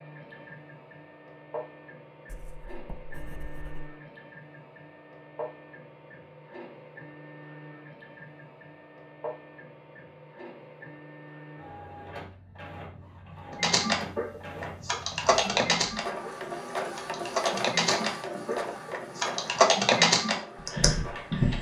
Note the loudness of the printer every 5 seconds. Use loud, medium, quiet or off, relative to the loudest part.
medium, medium, medium, loud, medium.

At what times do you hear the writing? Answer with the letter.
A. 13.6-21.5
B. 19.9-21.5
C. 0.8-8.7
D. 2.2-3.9
D.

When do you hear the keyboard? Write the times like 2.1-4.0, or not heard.
13.6-21.5.